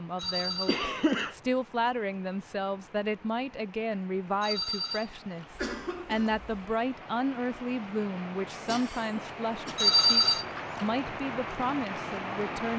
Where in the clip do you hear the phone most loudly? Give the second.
10 s.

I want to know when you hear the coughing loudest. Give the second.
1 s.